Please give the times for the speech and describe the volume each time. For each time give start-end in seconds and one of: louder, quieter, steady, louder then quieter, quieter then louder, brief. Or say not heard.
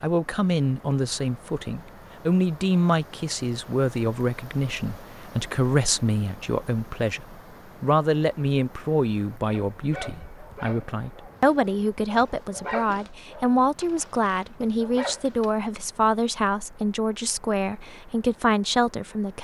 0.0-19.4 steady.